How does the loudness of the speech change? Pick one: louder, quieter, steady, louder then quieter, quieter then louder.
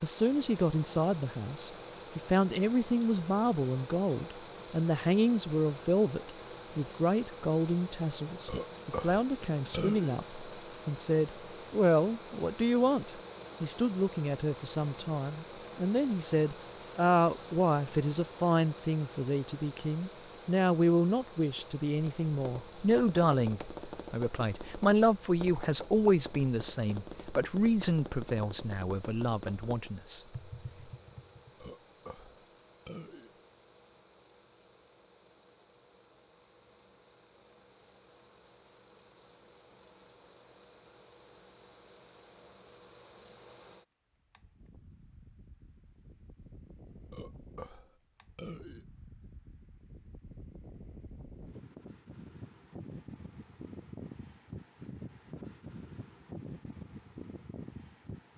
steady.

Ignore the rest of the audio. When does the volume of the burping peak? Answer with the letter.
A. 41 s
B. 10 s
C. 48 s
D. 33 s
B.